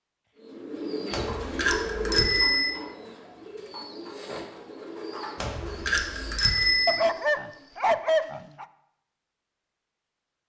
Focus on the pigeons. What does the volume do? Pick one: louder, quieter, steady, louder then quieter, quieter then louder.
quieter.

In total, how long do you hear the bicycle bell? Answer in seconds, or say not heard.
3 s.